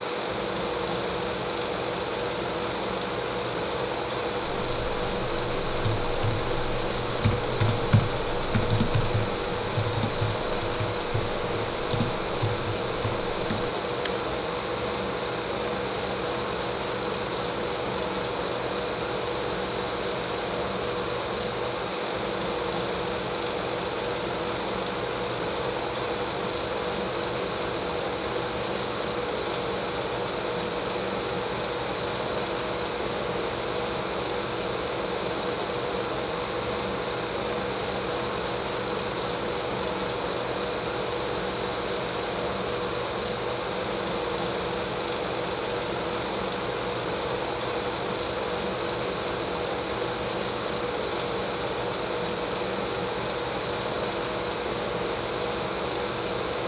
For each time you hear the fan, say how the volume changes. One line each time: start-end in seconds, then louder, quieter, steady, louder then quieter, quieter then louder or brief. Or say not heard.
0.0-56.6 steady.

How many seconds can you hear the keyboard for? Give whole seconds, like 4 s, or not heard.
10 s.